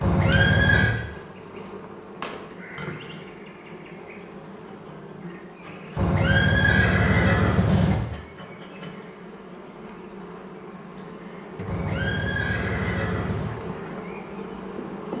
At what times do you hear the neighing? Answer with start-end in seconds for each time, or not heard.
0.0-0.9, 6.0-8.0, 11.7-13.5.